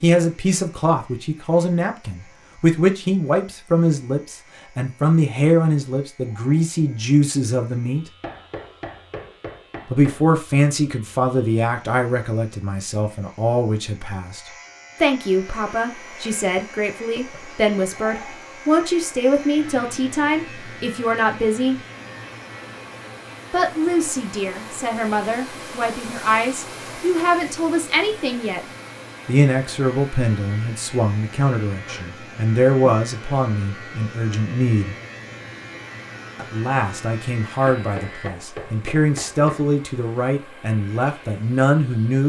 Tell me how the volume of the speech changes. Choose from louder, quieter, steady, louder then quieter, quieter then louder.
steady.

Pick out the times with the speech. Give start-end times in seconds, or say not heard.
0.0-8.1, 9.8-21.8, 23.5-28.6, 29.2-35.0, 36.4-42.2.